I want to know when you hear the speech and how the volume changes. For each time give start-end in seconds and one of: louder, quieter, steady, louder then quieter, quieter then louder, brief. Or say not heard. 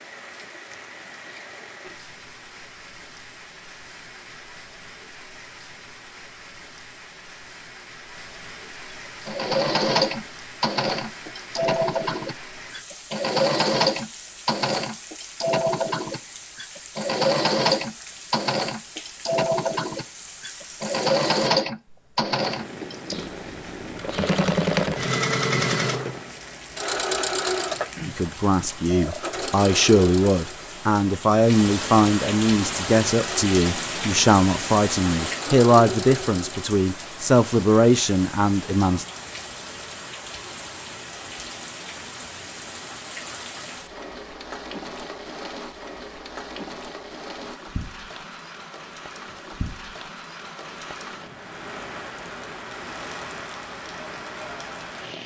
28.1-39.0 steady.